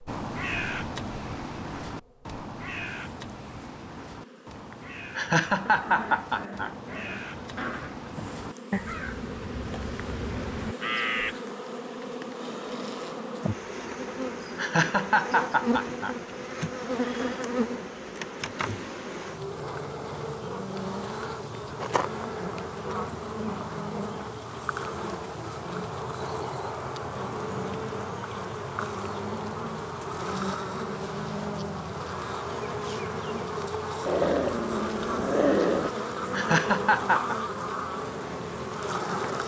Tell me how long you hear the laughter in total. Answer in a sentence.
The laughter can be heard for 4 seconds in total.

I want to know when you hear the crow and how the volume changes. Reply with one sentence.
You can hear the crow from 0.1 to 11.3 s, getting quieter then louder.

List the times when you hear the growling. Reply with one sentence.
You can hear the growling from 5.7 to 8.1 s, from 23.4 to 24.4 s and from 34.0 to 35.9 s.